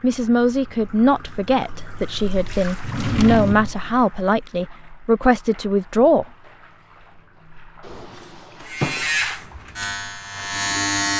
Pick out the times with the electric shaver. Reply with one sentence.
The electric shaver can be heard from 8.7 to 11.1 s.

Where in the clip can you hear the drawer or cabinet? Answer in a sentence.
You can hear the drawer or cabinet from 2.8 to 3.8 s and from 7.8 to 9.1 s.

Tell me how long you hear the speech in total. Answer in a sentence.
You can hear the speech for 6 seconds altogether.